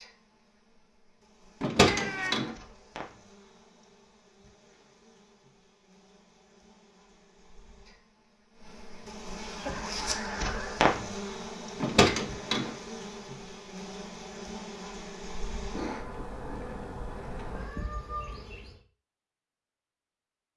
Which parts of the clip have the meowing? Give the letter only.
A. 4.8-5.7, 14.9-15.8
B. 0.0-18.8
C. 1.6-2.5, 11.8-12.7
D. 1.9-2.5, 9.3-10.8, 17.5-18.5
D.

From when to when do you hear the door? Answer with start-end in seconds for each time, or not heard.
1.6-2.5, 11.8-12.7.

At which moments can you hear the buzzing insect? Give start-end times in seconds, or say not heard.
0.0-18.8.